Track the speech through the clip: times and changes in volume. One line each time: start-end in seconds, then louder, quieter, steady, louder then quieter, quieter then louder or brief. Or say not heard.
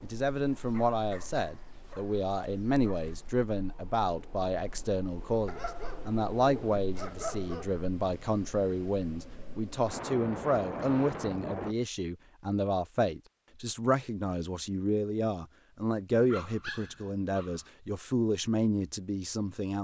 0.0-19.7 steady.